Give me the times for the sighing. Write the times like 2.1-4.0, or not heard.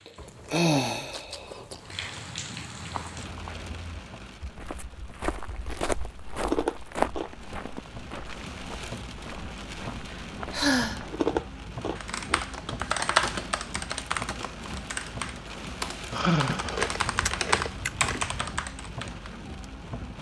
0.1-1.5, 10.5-11.0, 16.1-16.9.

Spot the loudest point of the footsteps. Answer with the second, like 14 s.
7 s.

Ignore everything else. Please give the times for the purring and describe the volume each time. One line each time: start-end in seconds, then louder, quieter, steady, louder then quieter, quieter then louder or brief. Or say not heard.
not heard.